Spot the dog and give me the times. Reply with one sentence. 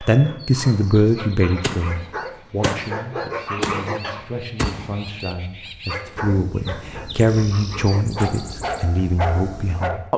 The dog can be heard from 0.0 to 4.2 s and from 5.8 to 10.0 s.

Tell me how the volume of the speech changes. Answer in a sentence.
The volume of the speech goes down, then up.